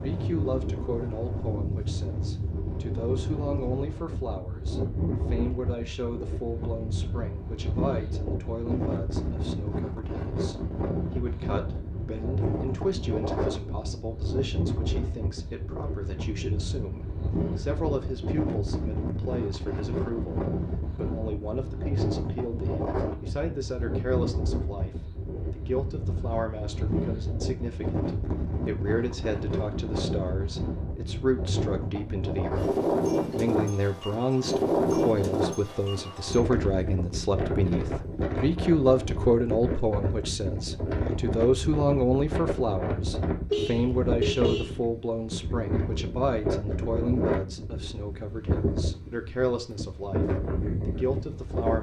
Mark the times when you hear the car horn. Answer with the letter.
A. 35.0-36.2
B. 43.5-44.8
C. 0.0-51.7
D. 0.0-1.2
B.